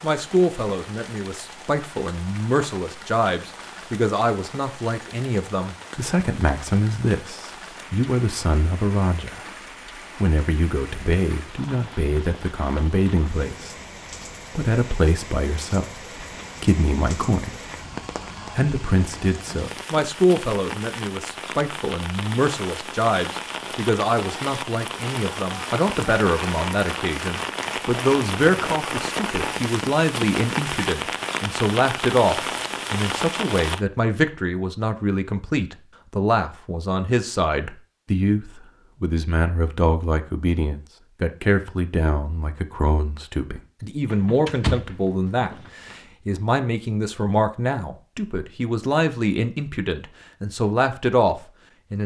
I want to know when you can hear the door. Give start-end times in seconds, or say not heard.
44.0-46.0.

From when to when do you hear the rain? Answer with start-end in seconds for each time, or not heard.
0.0-33.8.